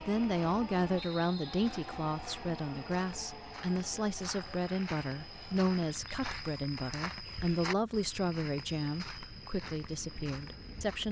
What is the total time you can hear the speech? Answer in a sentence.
You can hear the speech for 11 seconds altogether.